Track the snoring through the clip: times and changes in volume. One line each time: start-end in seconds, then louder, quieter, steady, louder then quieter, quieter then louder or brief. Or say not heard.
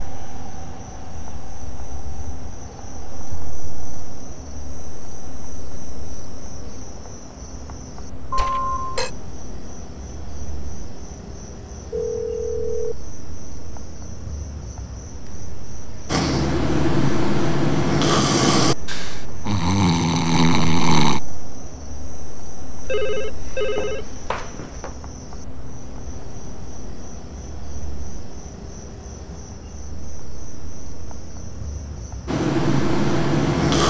16.1-21.2 steady
32.2-33.8 brief.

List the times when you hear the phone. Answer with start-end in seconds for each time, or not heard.
8.3-9.1, 11.9-12.9, 22.9-24.9.